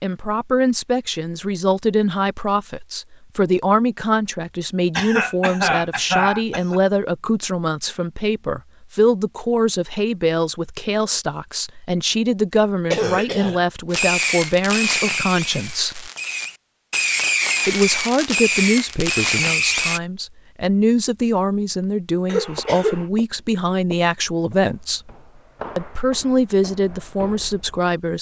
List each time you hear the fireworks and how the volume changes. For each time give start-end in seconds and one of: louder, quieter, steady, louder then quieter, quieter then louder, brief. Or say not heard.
13.9-20.0 quieter then louder.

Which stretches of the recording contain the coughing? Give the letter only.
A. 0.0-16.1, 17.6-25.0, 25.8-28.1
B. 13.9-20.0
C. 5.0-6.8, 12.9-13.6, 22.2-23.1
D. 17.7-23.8
C.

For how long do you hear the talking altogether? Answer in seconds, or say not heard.
26 s.